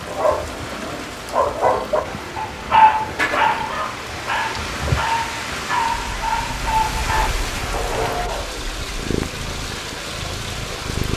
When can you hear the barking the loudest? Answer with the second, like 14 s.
3 s.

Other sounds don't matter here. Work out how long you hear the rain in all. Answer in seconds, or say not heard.
11 s.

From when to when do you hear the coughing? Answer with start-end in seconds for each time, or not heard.
not heard.